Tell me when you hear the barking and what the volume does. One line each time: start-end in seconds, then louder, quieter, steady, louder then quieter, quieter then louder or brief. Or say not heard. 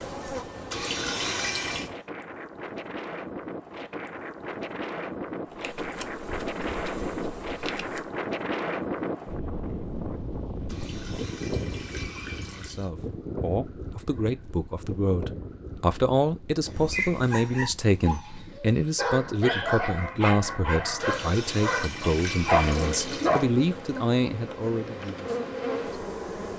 16.7-23.5 louder.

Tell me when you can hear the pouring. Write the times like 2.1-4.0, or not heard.
0.7-1.9, 10.7-12.9, 20.9-23.4.